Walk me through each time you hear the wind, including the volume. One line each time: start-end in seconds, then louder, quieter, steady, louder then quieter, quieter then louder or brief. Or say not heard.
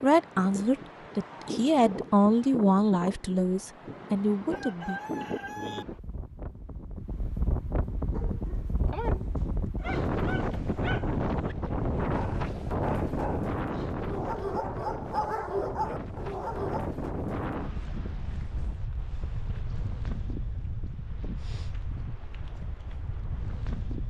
0.0-24.0 louder then quieter.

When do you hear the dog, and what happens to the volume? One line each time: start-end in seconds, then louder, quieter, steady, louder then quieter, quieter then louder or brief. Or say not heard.
8.1-16.9 louder.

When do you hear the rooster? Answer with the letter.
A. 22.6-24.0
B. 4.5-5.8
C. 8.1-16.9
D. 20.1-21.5
B.